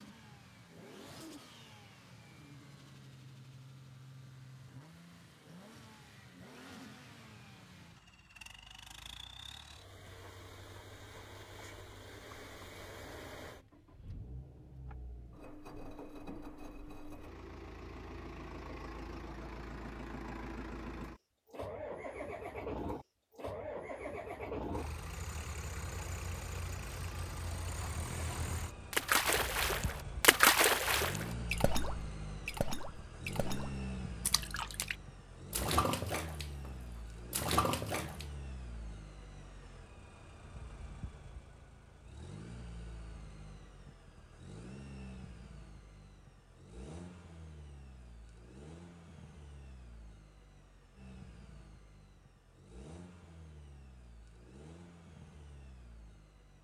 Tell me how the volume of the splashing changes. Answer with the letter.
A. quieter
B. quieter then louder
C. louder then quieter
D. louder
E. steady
B.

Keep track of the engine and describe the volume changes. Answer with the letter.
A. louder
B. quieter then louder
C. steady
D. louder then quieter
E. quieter
D.